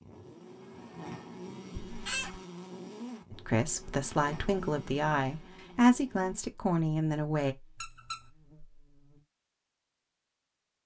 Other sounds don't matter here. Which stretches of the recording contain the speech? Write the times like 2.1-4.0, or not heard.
3.3-7.5.